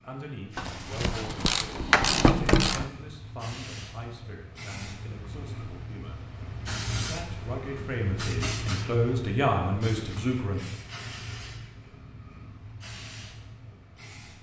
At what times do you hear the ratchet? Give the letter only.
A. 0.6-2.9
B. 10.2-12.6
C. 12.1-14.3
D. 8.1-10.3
A.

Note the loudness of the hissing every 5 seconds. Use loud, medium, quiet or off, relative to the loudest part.
medium, loud, medium.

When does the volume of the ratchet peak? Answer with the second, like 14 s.
2 s.